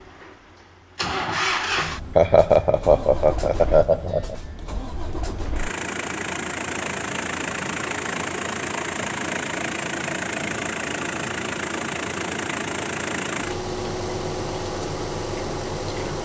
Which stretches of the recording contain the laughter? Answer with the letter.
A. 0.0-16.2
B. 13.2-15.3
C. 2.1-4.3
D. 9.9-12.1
C.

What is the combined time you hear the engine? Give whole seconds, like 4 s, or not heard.
16 s.